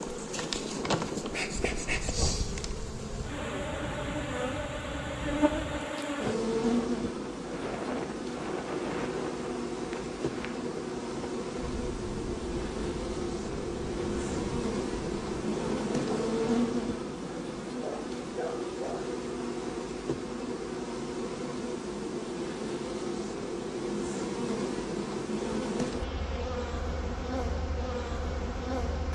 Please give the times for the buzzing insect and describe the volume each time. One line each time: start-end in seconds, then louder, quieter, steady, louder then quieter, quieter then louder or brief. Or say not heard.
0.0-29.0 steady.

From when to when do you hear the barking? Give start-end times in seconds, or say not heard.
17.7-19.1.